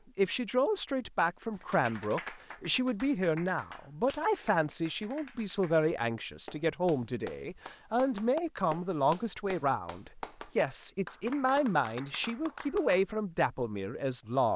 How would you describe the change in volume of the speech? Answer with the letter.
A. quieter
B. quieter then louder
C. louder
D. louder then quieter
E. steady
E.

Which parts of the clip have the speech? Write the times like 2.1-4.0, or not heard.
0.1-14.5.